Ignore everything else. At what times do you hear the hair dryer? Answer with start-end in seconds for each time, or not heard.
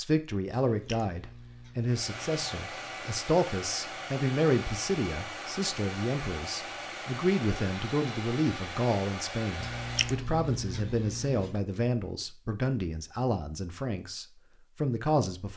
1.9-10.2.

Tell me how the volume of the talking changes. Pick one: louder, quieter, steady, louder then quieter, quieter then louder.
steady.